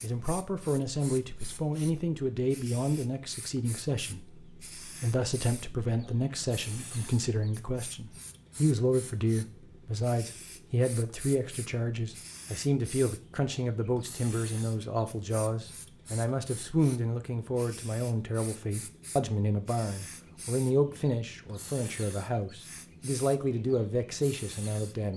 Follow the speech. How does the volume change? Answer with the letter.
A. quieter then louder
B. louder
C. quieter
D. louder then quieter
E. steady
E.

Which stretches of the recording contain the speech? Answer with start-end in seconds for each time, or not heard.
0.0-25.1.